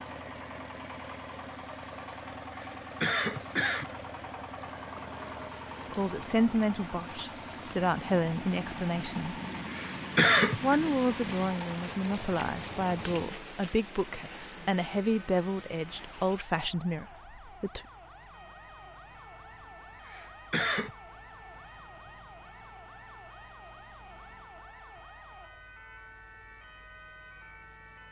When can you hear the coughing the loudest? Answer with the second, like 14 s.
10 s.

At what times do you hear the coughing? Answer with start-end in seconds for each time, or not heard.
2.5-3.9, 9.7-10.8, 20.1-20.9.